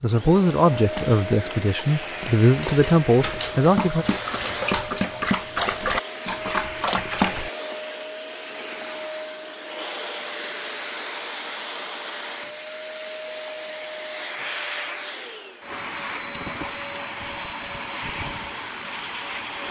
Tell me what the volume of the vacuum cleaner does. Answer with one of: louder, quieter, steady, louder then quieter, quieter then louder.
steady.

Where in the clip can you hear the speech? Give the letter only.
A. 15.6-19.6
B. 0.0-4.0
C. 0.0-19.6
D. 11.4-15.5
B.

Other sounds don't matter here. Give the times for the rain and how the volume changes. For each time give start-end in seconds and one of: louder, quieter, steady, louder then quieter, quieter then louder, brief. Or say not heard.
not heard.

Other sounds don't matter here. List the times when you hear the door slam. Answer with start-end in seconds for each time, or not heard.
not heard.